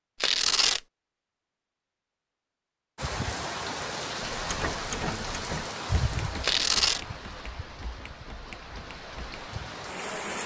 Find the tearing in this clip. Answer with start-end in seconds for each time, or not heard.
0.2-0.8, 6.4-7.0.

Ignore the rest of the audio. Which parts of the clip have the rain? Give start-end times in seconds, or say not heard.
3.0-10.4.